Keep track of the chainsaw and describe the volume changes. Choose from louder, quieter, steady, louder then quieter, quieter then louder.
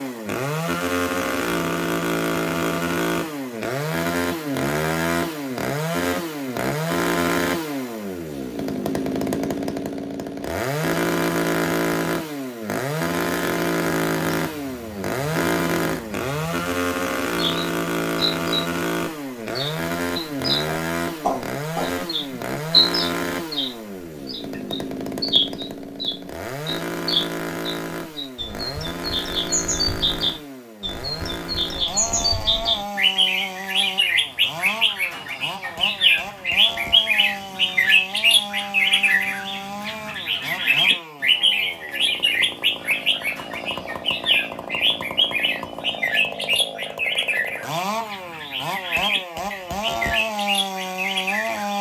quieter.